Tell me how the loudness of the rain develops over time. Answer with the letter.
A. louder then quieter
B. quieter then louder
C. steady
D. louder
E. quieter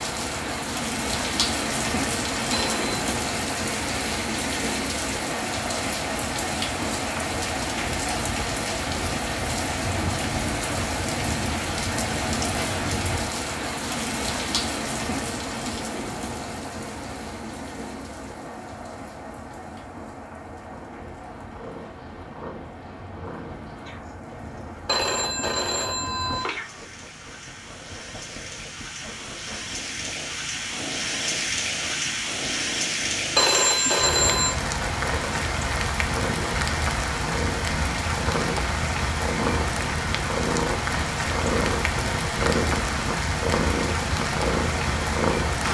B.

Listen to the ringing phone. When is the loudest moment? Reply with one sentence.
The loudest moment of the ringing phone is at 34 seconds.